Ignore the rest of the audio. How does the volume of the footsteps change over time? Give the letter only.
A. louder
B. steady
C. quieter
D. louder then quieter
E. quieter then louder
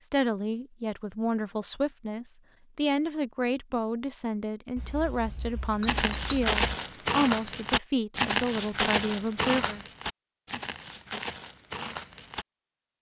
C.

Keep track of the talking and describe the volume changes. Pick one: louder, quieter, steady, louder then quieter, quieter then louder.
steady.